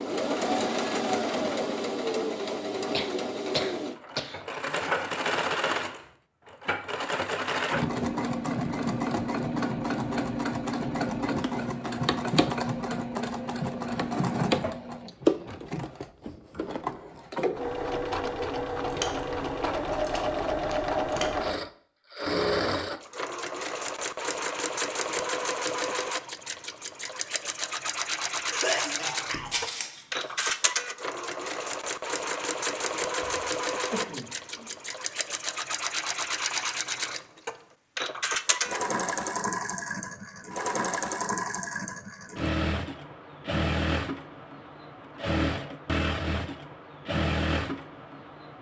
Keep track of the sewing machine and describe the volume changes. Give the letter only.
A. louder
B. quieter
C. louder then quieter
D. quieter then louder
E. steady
E.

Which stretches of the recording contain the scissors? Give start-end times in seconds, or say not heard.
18.8-21.3, 29.5-30.6.